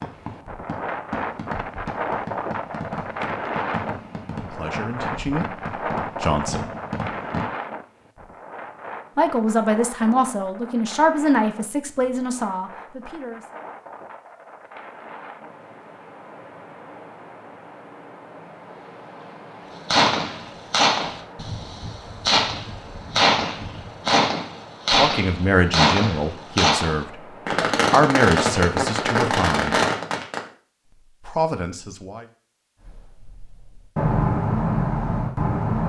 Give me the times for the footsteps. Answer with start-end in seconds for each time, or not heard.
not heard.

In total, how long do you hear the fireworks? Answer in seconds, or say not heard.
21 s.